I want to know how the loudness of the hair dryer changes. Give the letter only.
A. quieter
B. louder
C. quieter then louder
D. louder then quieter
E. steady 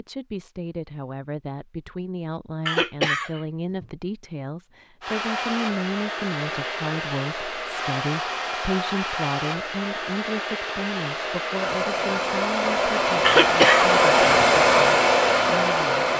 B.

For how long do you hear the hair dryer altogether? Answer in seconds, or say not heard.
11 s.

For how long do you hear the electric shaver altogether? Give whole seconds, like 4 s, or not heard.
not heard.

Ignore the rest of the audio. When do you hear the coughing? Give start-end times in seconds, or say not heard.
2.6-3.9, 13.2-14.4.